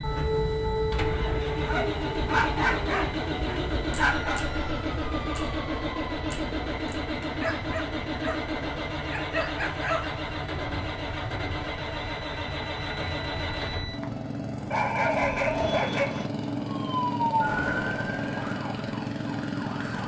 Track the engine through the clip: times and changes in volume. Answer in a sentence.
The engine can be heard from 0.0 to 20.0 s, at a steady volume.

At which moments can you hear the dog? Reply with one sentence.
You can hear the dog from 1.6 to 4.4 s, from 7.4 to 8.3 s, from 9.1 to 10.1 s and from 14.7 to 16.3 s.